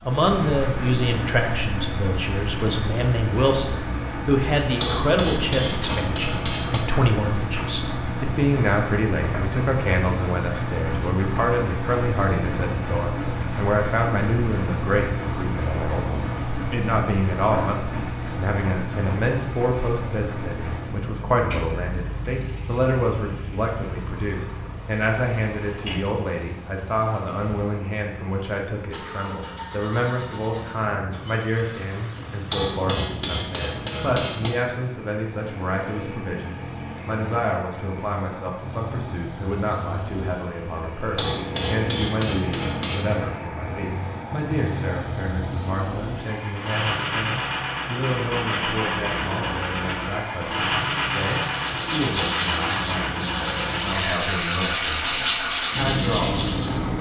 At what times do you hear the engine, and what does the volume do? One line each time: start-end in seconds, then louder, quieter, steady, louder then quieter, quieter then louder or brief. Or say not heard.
0.0-56.9 quieter then louder.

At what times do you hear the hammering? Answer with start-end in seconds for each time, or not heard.
4.8-6.8, 32.5-34.5, 41.1-43.1.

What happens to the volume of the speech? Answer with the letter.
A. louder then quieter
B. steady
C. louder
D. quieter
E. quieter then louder
D.